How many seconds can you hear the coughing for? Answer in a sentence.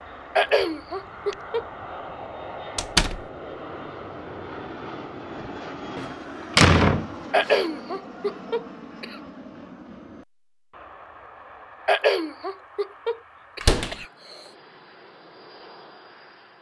You can hear the coughing for 6 seconds altogether.